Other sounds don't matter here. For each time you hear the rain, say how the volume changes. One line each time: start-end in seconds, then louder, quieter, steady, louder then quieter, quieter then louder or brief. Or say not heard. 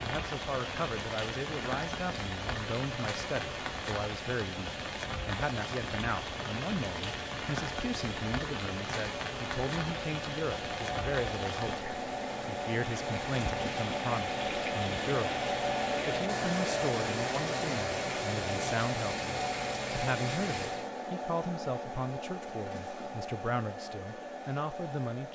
0.0-20.9 steady.